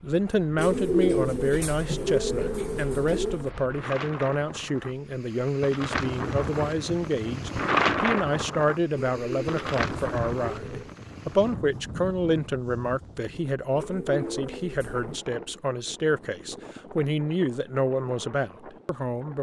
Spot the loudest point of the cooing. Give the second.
1 s.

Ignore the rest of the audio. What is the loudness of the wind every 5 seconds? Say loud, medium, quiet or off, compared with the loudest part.
medium, loud, medium, quiet.